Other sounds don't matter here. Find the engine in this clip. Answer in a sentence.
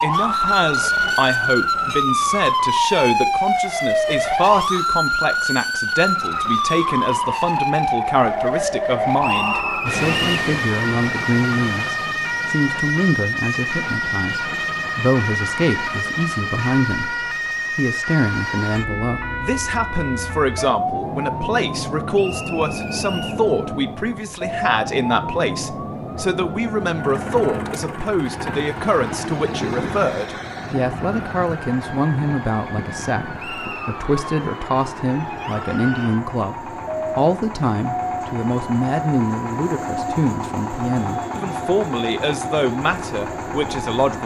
The engine can be heard from 26.9 to 44.2 s.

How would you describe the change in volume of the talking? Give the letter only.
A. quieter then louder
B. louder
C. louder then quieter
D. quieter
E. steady
E.